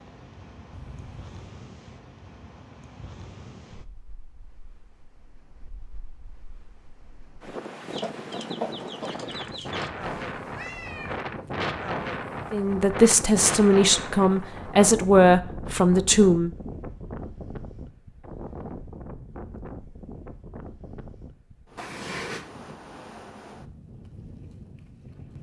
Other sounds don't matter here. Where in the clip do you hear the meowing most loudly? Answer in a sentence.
The volume of the meowing peaks at 22 seconds.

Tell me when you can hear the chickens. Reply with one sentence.
The chickens can be heard from 7.9 to 9.9 s.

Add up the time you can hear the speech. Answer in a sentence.
You can hear the speech for 4 seconds altogether.